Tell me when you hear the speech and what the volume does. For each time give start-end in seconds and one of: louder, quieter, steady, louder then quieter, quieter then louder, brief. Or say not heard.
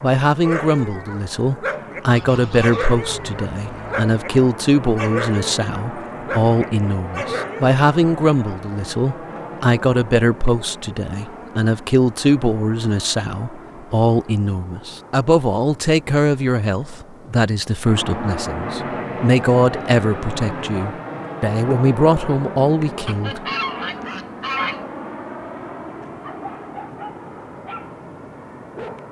0.0-23.4 steady.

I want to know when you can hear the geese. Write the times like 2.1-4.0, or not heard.
2.0-4.0, 23.1-24.9.